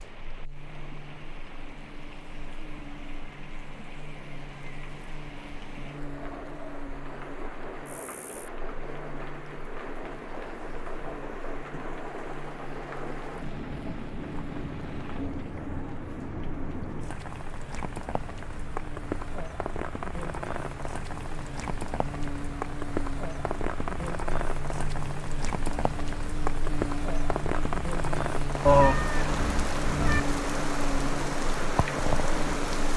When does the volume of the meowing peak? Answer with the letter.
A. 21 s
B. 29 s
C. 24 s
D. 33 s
B.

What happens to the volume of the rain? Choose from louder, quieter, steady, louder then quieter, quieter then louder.
louder.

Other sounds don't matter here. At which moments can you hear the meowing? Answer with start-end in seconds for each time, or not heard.
28.6-30.2.